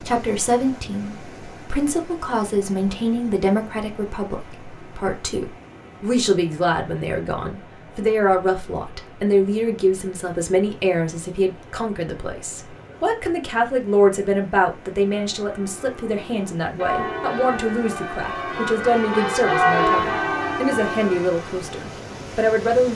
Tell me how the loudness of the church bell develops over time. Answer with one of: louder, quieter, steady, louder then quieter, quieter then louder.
louder then quieter.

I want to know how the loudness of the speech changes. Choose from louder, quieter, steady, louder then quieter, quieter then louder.
steady.